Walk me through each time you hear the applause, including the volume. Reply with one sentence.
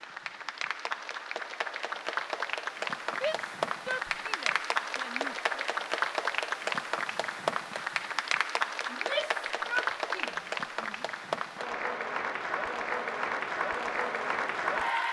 You can hear the applause from 0.0 to 15.0 s, at a steady volume.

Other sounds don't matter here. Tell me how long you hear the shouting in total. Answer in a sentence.
You can hear the shouting for 5 seconds altogether.